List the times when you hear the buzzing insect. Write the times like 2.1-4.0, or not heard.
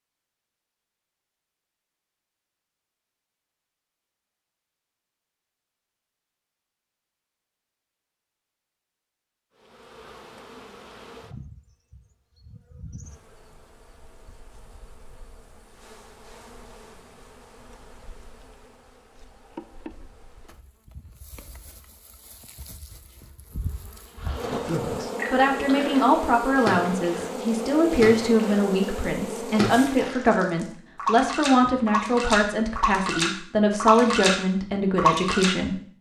9.6-30.1.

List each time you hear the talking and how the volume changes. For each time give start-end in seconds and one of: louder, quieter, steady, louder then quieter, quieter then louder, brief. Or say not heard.
24.5-35.8 steady.